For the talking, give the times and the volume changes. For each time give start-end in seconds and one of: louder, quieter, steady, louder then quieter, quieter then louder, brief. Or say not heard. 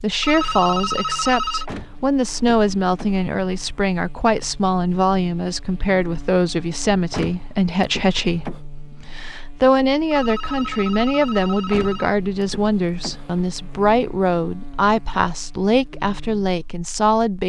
0.0-17.4 steady.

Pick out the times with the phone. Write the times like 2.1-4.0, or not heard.
0.2-1.6, 10.1-12.1.